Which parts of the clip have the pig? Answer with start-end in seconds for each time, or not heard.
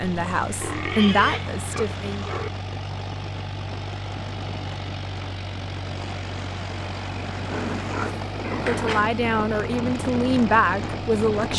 0.5-2.5, 7.5-9.1.